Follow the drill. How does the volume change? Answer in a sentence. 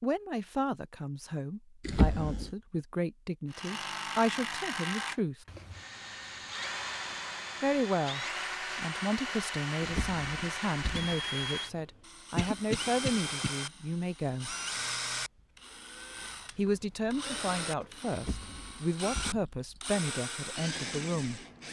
The volume of the drill stays about the same.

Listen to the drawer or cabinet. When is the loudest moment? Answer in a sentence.
The volume of the drawer or cabinet peaks at 2 seconds.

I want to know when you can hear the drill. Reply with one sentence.
The drill can be heard from 3.5 to 21.6 s.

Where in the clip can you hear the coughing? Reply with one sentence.
You can hear the coughing from 12.3 to 13.5 s.